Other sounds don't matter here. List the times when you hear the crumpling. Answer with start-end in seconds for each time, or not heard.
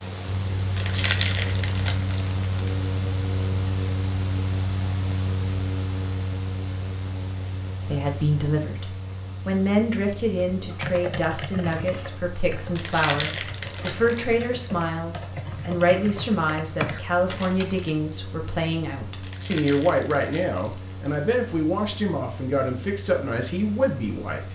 0.8-2.9, 12.8-14.2, 19.2-21.4.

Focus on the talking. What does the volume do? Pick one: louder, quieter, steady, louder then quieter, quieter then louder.
steady.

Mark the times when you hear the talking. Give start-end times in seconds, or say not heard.
7.8-24.5.